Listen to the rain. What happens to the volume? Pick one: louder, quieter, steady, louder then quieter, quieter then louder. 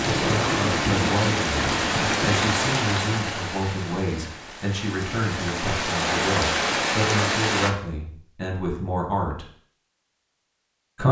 quieter then louder.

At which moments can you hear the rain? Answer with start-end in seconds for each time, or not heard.
0.0-7.7.